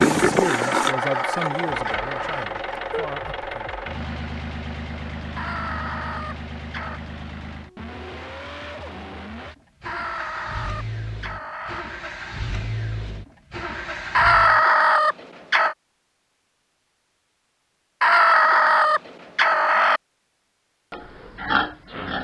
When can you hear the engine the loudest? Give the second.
1 s.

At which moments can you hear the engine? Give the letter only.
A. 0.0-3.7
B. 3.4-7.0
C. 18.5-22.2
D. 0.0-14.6
D.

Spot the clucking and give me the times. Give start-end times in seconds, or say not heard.
0.5-2.5, 5.3-7.0, 9.8-11.8, 14.1-15.8, 18.0-20.0.